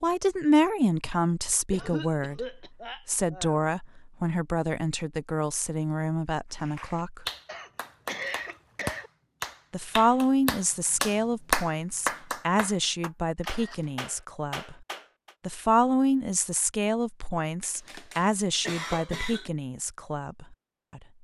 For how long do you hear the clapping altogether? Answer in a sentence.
You can hear the clapping for 9 seconds altogether.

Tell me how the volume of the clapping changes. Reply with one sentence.
The volume of the clapping goes up, then down.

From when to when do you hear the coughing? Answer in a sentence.
You can hear the coughing from 1.7 to 3.6 s, from 7.5 to 9.1 s and from 17.6 to 19.5 s.